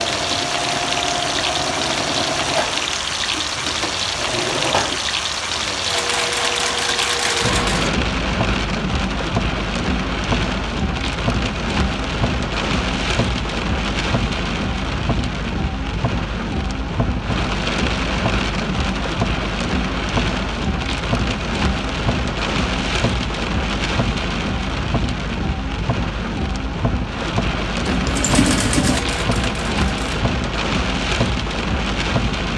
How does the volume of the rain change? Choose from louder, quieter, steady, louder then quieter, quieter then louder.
steady.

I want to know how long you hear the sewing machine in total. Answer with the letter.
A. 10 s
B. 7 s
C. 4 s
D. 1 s
A.